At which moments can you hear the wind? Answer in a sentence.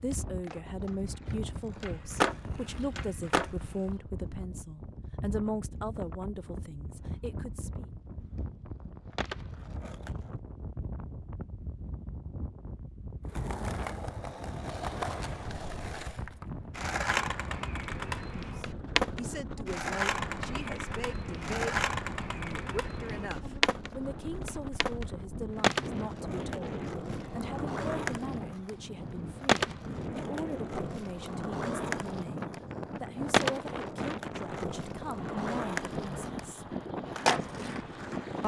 You can hear the wind from 0.0 to 38.4 s.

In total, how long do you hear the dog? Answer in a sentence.
You can't hear the dog here.